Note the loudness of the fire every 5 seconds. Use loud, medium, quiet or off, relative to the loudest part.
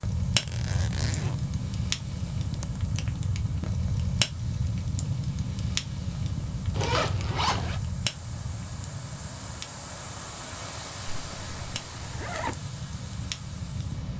loud, loud, medium.